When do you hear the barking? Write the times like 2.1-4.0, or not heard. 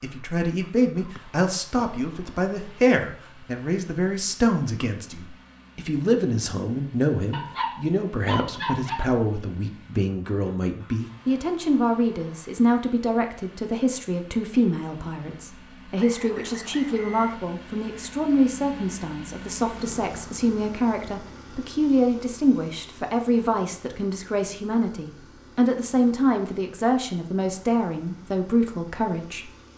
7.3-9.1.